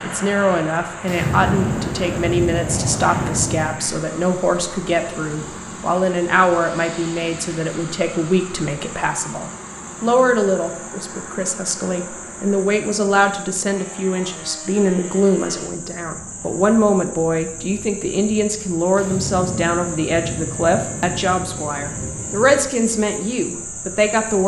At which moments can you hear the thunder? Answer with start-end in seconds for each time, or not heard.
1.1-3.8, 18.9-22.6.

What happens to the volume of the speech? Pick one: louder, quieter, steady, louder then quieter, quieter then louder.
steady.